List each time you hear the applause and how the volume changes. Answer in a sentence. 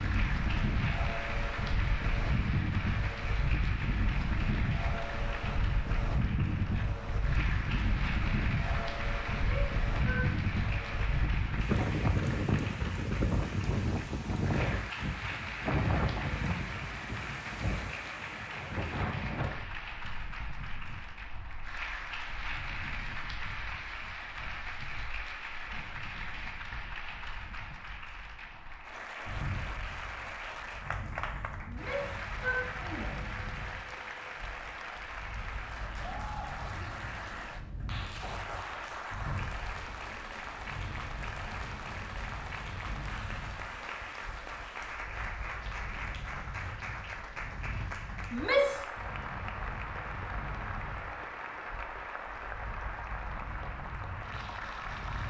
You can hear the applause from 0.0 to 55.2 s, at a steady volume.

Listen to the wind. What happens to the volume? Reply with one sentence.
The loudness of the wind goes down.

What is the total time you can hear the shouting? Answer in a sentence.
You can hear the shouting for 3 seconds altogether.